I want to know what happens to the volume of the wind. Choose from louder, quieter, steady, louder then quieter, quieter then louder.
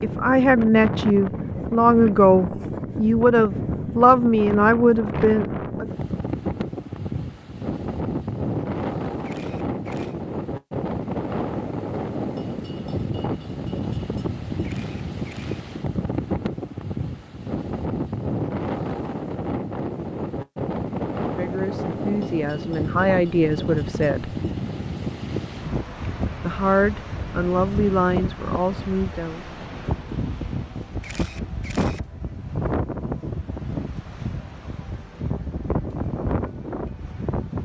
steady.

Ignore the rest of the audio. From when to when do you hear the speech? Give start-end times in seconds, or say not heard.
0.0-5.8, 21.2-24.3, 26.4-29.6.